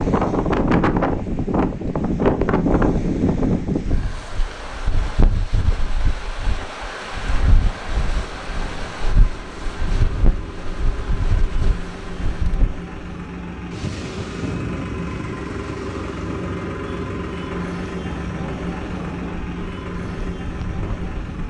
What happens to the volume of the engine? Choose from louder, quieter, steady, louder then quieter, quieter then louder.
louder.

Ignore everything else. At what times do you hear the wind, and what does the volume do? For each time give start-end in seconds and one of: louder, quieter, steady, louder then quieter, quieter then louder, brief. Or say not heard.
0.0-21.4 quieter.